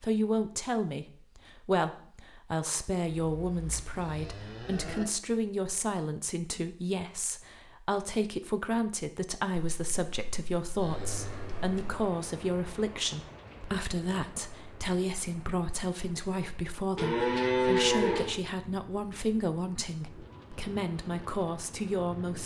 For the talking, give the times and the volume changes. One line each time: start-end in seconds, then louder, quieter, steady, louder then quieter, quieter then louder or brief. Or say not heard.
0.0-22.4 steady.